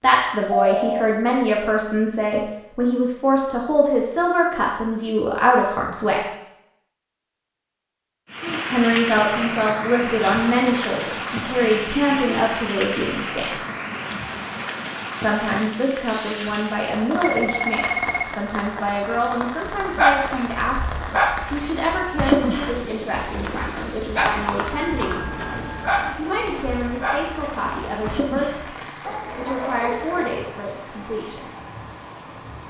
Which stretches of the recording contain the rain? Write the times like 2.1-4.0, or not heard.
8.3-32.6.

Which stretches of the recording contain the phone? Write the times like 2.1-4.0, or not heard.
0.5-1.1, 17.2-18.4, 24.7-26.2.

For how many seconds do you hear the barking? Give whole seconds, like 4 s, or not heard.
11 s.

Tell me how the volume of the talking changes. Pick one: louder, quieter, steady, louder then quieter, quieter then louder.
quieter.